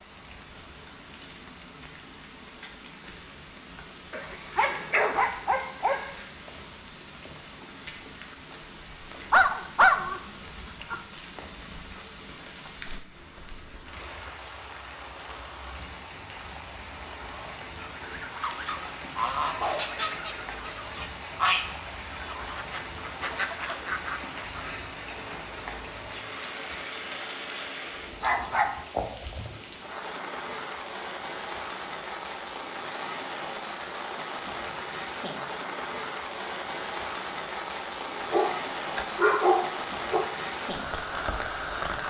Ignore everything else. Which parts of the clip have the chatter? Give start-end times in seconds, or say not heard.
not heard.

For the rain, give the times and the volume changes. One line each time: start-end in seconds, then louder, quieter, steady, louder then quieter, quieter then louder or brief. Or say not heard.
0.0-42.0 louder.